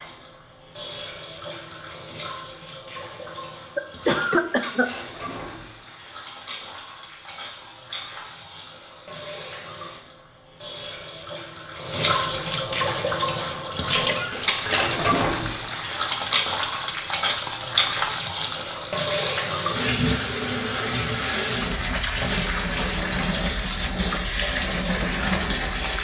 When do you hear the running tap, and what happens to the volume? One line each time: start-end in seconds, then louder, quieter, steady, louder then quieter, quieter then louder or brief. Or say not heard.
0.0-25.9 louder.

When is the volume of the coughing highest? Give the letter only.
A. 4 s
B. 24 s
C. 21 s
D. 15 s
A.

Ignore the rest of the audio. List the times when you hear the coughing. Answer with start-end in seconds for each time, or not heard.
3.8-4.9, 14.0-14.9.